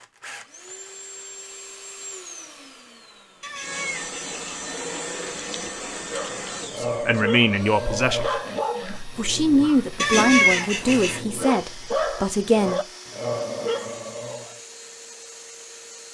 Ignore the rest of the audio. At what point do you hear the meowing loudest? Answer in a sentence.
The loudest moment of the meowing is at 10 seconds.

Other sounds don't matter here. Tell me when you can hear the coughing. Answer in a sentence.
You can't hear the coughing here.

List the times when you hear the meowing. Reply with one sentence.
You can hear the meowing from 3.4 to 4.4 s and from 9.9 to 11.2 s.